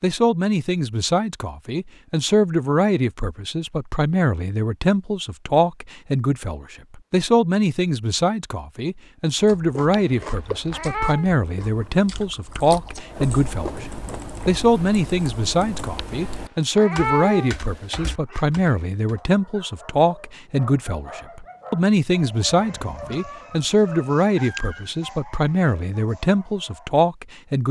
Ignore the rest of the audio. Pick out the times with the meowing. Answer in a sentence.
You can hear the meowing from 9.9 to 11.2 s and from 15.9 to 17.6 s.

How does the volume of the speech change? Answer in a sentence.
The loudness of the speech stays about the same.